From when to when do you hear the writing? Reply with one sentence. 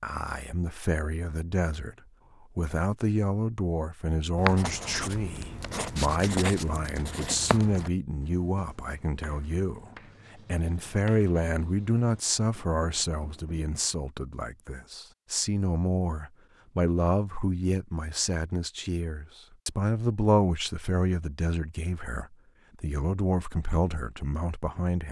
You can hear the writing from 4.3 to 13.7 s.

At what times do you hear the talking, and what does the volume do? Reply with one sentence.
The talking can be heard briefly from 0.0 to 1.9 s; and from 2.5 to 25.0 s, at a steady volume.